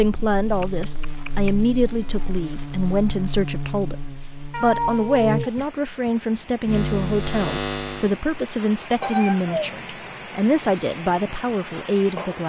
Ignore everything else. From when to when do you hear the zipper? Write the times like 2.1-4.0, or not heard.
not heard.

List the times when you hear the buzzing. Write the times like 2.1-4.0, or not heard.
0.0-8.2.